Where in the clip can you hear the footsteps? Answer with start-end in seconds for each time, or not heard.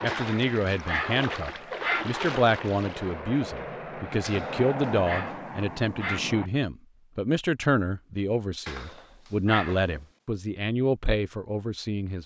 not heard.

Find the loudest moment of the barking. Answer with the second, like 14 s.
2 s.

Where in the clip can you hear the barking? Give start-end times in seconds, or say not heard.
0.1-2.0, 4.2-6.2, 8.7-10.0.